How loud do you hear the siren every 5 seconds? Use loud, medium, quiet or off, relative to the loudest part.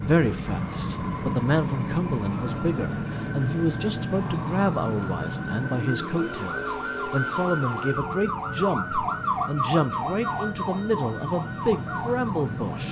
medium, loud, loud.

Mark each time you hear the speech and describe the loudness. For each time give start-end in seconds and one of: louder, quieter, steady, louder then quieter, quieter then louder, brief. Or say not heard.
0.0-12.8 steady.